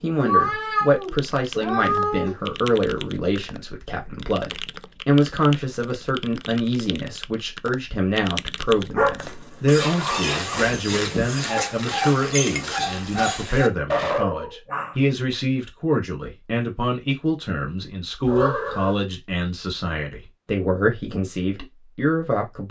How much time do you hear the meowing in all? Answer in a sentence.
You can hear the meowing for 4 seconds altogether.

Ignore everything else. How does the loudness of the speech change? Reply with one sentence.
The loudness of the speech stays about the same.